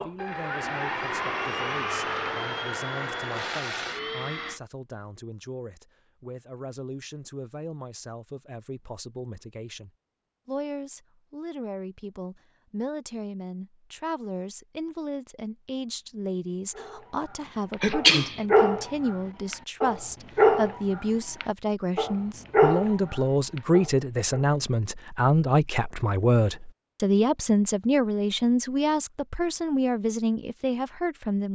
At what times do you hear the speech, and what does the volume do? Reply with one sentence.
The speech can be heard from 0.0 to 31.5 s, getting louder.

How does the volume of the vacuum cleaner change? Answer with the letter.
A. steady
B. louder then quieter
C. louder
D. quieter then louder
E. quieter
A.